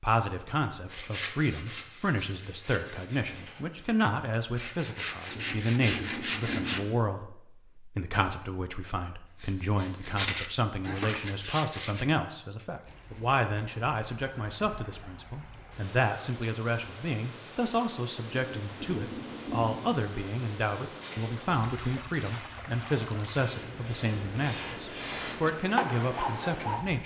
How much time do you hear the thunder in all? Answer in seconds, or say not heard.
3 s.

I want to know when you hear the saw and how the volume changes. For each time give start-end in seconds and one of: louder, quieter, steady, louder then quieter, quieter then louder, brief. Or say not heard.
0.8-6.8 quieter then louder
9.2-12.1 brief
20.9-26.8 louder.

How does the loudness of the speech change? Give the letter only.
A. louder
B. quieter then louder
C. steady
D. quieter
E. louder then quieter
C.